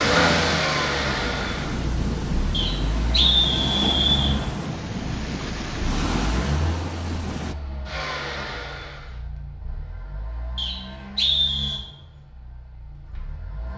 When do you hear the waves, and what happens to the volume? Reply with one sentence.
The waves can be heard from 0.0 to 7.5 s, at a steady volume.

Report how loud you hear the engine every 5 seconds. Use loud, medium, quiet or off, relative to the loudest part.
loud, medium, quiet.